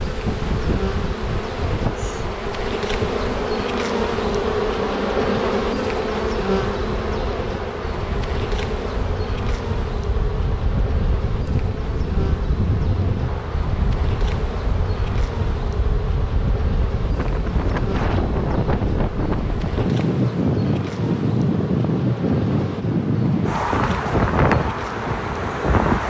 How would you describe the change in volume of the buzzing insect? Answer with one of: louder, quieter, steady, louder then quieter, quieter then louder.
quieter.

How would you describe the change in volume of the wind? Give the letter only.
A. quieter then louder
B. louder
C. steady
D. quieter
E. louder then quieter
B.